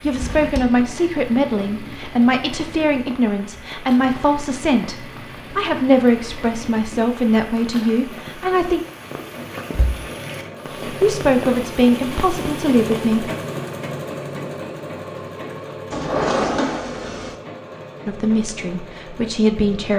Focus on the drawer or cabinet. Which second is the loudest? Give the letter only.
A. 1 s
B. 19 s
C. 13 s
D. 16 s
D.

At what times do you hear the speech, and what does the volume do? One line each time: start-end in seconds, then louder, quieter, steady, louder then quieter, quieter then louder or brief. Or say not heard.
0.0-8.8 steady
10.8-13.3 brief
18.1-19.9 brief.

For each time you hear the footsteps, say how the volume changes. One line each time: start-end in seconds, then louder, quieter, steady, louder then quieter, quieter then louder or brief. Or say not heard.
not heard.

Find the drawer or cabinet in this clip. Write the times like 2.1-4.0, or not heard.
0.0-0.8, 9.7-10.1, 15.9-17.4.